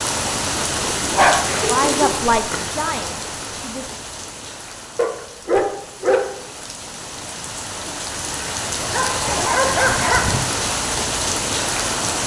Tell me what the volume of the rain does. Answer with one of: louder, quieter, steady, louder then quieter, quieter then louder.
quieter then louder.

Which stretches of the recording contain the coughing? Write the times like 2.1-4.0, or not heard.
1.4-2.1.